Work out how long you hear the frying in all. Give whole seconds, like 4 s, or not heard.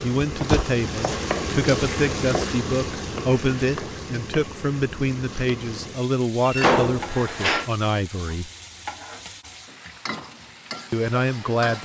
12 s.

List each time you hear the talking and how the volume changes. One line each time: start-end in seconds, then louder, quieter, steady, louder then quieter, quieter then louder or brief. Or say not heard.
0.0-8.5 steady
10.9-11.8 brief.